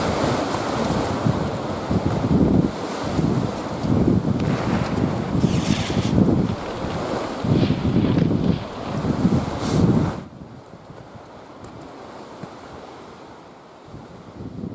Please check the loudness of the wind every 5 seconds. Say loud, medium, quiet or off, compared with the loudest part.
loud, loud, quiet.